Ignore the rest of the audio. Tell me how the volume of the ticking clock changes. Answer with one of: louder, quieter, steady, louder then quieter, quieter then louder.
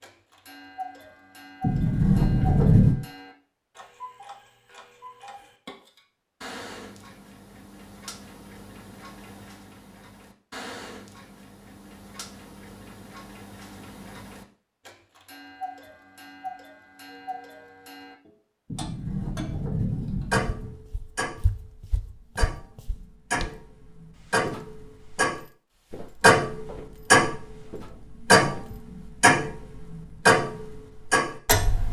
louder.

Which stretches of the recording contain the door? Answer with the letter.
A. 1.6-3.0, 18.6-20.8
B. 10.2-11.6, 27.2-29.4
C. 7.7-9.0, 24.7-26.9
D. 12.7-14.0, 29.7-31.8
A.